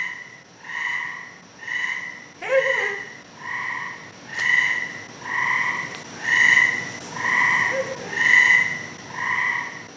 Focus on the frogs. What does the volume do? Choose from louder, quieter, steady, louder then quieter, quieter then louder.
louder.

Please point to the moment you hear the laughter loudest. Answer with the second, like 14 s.
3 s.